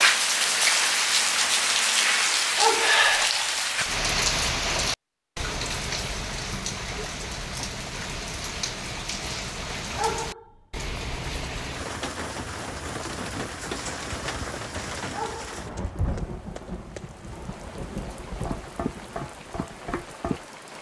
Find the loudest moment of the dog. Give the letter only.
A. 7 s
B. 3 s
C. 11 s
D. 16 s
B.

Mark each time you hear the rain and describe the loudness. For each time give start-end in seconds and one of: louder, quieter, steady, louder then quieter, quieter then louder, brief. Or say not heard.
0.0-20.7 quieter.